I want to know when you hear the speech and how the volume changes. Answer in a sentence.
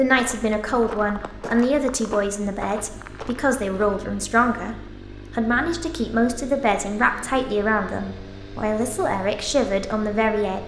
You can hear the speech from 0.0 to 10.6 s, at a steady volume.